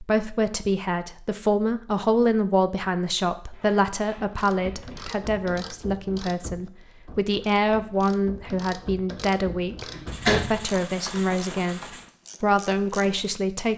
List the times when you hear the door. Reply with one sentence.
You can hear the door from 9.7 to 10.7 s.